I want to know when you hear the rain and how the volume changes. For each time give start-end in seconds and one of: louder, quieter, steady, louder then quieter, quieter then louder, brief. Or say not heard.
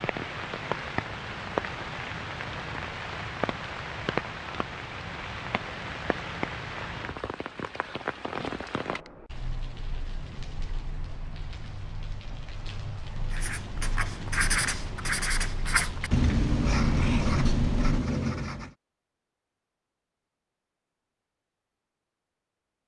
0.0-18.0 quieter.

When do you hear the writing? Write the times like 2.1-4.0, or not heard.
13.3-18.7.